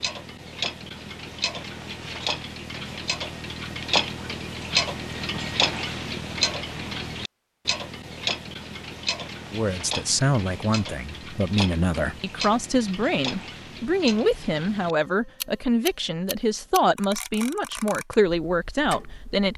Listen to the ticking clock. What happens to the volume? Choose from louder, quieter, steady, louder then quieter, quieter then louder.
quieter.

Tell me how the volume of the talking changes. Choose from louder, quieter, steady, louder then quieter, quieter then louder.
steady.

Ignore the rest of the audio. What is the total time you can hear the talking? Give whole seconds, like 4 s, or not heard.
10 s.